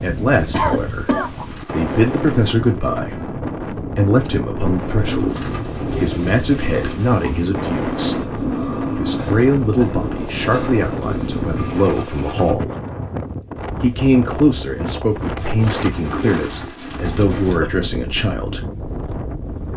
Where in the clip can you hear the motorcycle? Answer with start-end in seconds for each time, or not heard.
5.1-12.6.